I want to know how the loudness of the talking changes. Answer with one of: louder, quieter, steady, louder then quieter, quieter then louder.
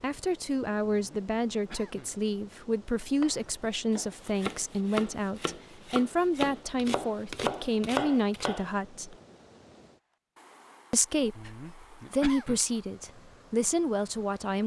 steady.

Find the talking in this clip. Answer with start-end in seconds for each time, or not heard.
0.0-9.2, 10.9-14.6.